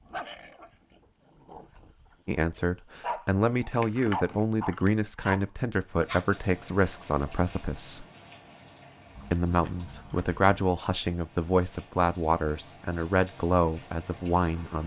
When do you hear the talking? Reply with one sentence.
The talking can be heard from 2.2 to 8.1 s and from 9.3 to 14.8 s.